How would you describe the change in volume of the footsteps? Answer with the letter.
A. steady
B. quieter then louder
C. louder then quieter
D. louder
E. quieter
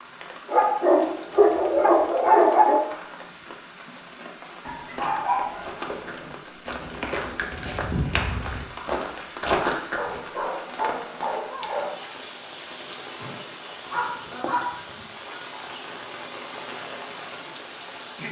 D.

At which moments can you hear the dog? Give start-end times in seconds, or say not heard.
0.5-2.8, 4.7-6.3, 9.9-11.9, 13.9-15.4.